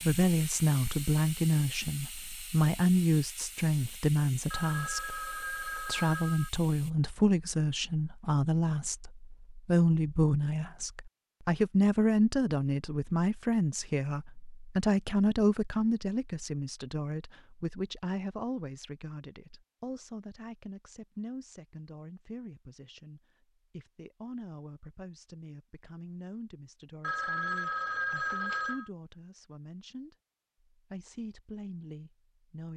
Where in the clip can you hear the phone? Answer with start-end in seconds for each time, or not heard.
4.5-6.5, 27.0-28.9.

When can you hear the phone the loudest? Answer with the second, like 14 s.
28 s.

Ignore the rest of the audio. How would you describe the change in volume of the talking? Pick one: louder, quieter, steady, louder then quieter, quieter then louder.
quieter.